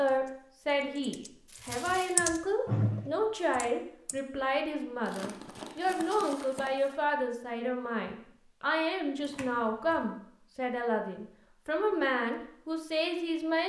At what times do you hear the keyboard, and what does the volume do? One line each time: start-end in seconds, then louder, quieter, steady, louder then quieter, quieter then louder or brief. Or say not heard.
0.1-4.2 louder then quieter.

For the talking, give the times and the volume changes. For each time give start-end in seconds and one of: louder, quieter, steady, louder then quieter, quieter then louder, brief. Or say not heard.
0.0-13.6 steady.